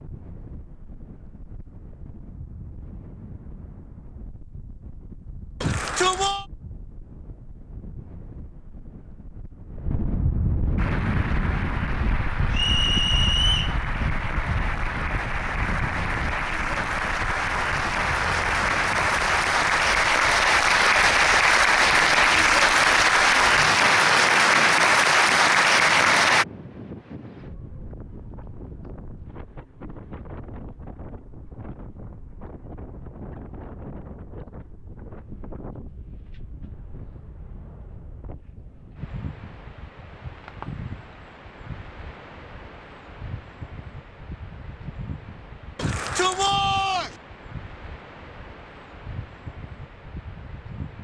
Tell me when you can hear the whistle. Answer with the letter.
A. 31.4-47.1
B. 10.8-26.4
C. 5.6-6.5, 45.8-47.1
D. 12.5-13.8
D.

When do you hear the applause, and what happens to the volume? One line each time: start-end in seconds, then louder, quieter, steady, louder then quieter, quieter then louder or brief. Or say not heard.
10.8-26.4 louder.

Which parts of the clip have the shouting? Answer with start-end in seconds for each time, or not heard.
5.6-6.5, 45.8-47.1.